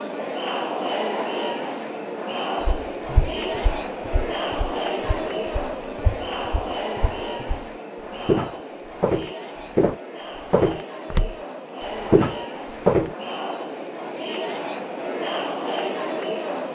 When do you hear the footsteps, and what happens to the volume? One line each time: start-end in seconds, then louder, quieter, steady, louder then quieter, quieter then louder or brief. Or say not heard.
2.6-11.3 quieter then louder
11.9-13.2 brief.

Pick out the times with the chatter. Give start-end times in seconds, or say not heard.
0.0-16.7.